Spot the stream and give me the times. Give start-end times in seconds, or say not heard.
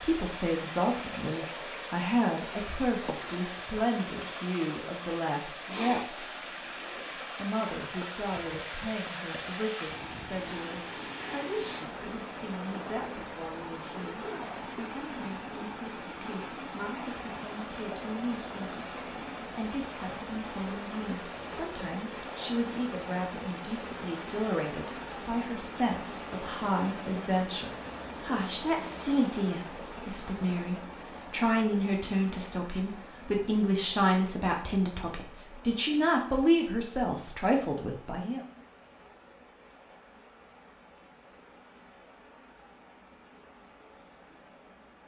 0.0-45.0.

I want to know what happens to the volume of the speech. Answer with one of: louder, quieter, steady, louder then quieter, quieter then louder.
quieter then louder.